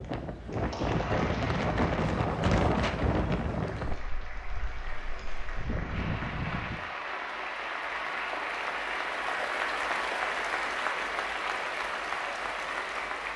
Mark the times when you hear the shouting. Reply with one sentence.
The shouting can't be heard in this clip.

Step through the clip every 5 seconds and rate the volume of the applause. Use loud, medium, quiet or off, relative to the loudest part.
medium, loud, loud.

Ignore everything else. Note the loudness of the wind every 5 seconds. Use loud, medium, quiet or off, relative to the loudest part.
loud, medium, off.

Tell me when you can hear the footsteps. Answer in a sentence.
The footsteps can't be heard in this clip.